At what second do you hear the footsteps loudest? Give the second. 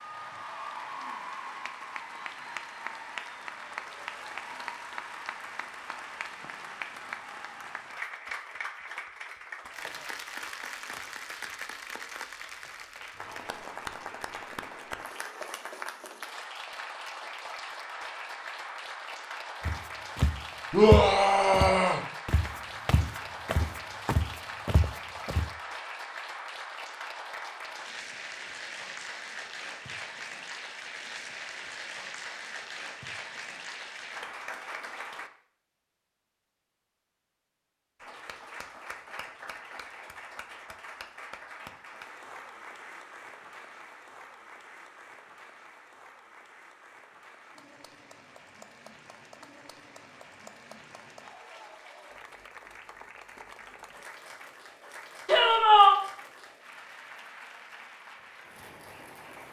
21 s.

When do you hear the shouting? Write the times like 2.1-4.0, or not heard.
20.7-22.0, 55.2-56.0.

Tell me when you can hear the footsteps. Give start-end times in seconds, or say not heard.
19.6-25.5.